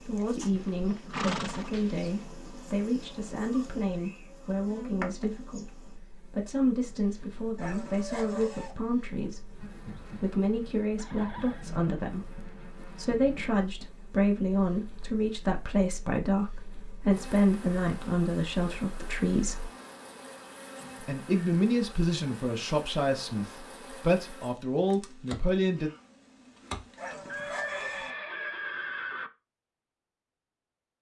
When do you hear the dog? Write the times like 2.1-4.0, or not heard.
7.5-8.8, 26.9-28.1.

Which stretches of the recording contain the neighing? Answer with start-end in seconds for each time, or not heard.
0.5-2.1, 10.9-11.7, 27.2-29.3.